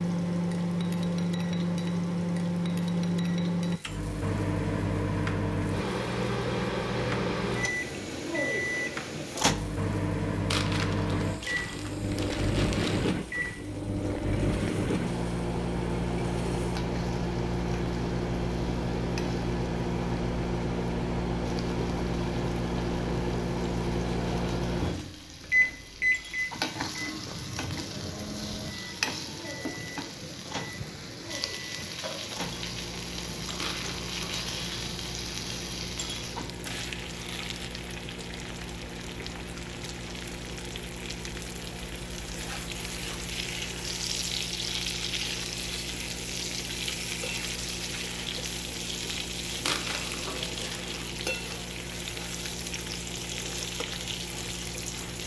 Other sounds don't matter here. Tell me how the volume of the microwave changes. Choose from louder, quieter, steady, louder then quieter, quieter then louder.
quieter.